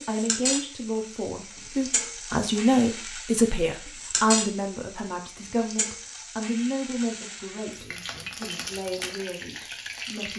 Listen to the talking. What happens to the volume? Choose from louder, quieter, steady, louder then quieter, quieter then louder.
louder then quieter.